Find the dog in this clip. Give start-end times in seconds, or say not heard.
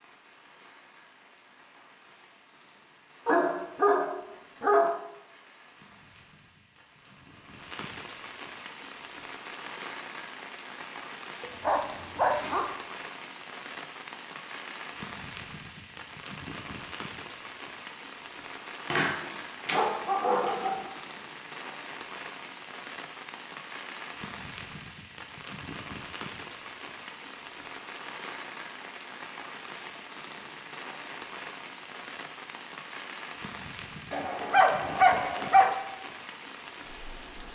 3.2-5.0, 11.4-12.7, 18.9-20.9, 34.1-35.8.